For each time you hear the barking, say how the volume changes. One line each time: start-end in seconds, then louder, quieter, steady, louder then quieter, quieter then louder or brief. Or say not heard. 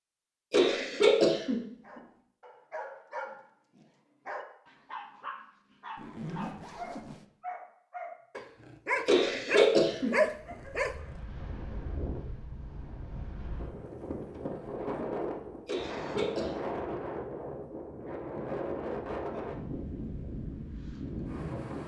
1.8-10.9 louder.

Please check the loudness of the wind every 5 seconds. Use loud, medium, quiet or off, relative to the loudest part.
off, off, medium, loud, loud.